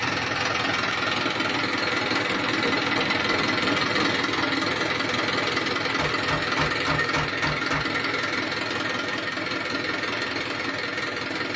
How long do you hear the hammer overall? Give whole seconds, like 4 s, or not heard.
4 s.